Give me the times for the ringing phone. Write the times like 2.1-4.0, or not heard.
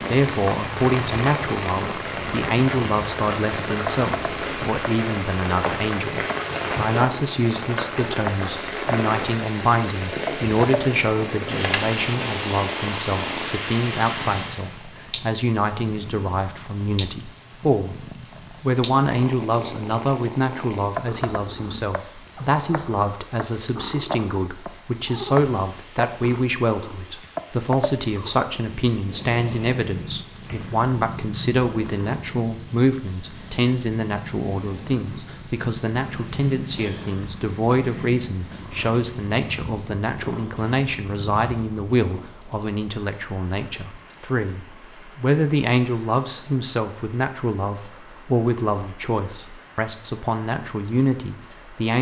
11.5-11.9.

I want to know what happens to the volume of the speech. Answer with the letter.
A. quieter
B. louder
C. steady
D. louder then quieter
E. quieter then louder
C.